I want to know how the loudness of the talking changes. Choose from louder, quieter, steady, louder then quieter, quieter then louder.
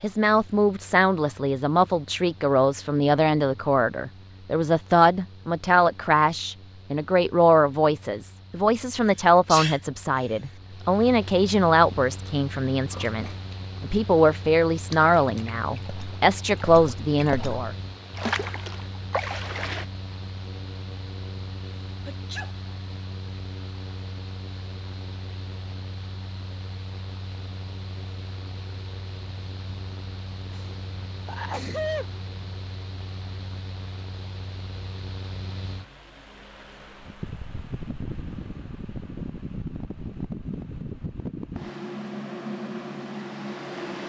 steady.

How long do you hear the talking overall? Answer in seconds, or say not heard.
18 s.